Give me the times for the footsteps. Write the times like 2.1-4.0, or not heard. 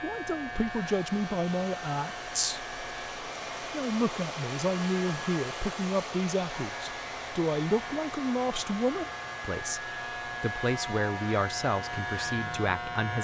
not heard.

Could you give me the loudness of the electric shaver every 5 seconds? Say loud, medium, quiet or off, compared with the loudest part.
medium, medium, loud.